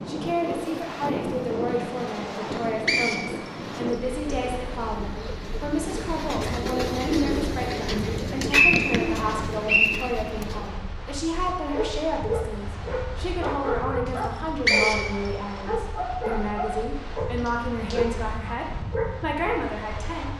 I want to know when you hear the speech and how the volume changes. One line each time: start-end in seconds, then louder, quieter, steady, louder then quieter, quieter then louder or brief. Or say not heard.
0.1-20.3 steady.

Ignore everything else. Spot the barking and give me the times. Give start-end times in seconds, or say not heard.
11.7-19.1.